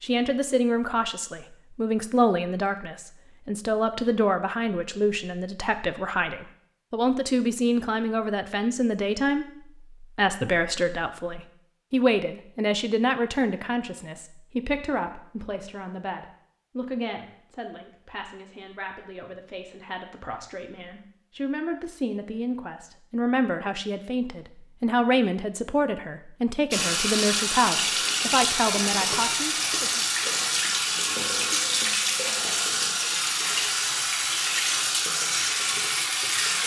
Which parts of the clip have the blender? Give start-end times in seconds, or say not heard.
not heard.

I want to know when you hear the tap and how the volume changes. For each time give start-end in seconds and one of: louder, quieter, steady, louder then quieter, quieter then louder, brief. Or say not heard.
26.7-36.6 steady.